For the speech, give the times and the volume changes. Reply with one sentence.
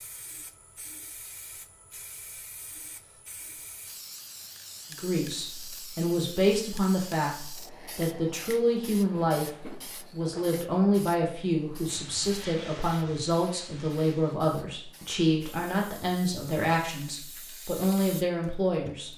You can hear the speech from 4.9 to 19.1 s, at a steady volume.